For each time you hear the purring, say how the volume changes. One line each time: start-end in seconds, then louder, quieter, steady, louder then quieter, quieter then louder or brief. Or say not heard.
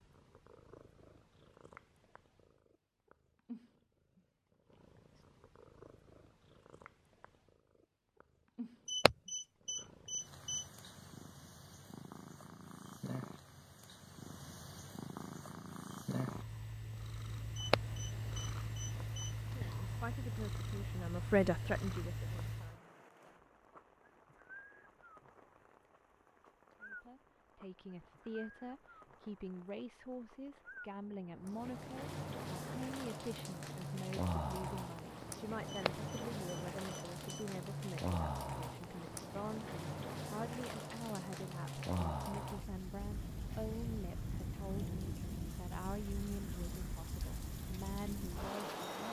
0.0-22.8 louder.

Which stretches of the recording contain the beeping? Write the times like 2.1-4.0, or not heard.
8.8-10.7, 17.6-19.3, 35.6-37.5.